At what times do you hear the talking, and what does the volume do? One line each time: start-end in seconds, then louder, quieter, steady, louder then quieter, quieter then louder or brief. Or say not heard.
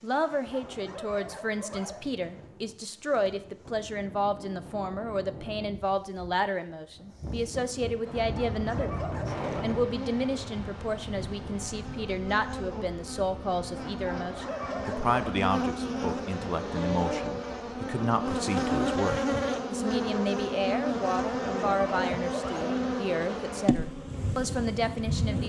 0.0-25.4 steady.